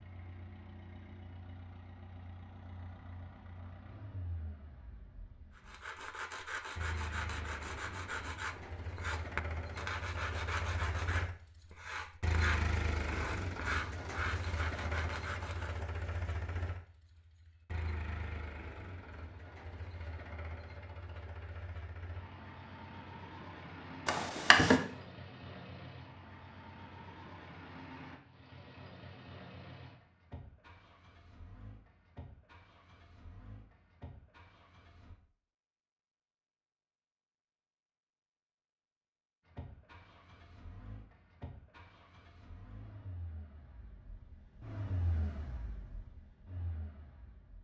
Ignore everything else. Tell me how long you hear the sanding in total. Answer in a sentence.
The sanding can be heard for 10 seconds in total.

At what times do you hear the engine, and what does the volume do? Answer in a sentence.
The engine can be heard from 0.0 to 35.1 s, getting louder then quieter; and from 39.5 to 47.5 s, getting louder then quieter.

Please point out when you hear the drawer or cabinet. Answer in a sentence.
You can hear the drawer or cabinet from 24.1 to 24.8 s.